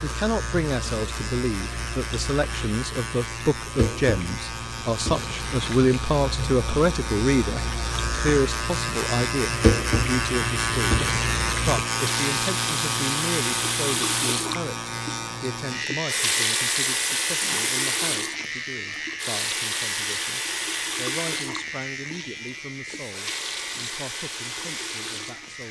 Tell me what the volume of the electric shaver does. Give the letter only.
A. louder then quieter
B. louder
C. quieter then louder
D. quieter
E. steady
A.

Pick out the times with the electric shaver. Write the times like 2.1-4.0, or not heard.
0.0-25.6.